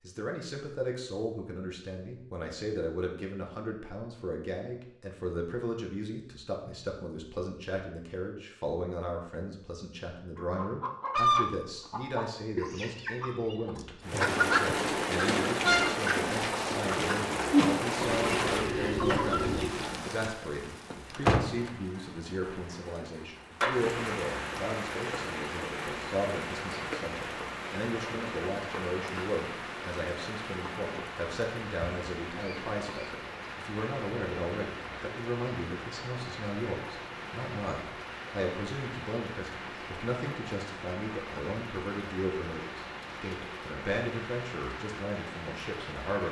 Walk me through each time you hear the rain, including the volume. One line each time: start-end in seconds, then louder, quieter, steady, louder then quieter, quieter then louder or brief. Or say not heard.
14.0-46.2 quieter.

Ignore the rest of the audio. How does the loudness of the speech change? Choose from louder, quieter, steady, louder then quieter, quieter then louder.
steady.